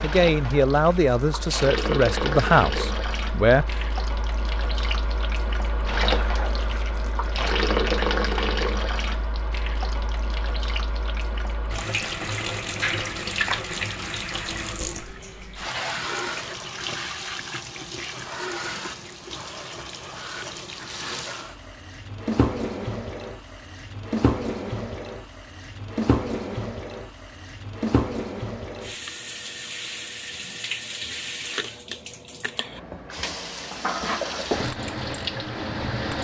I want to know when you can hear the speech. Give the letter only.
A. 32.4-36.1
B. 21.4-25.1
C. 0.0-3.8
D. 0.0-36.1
C.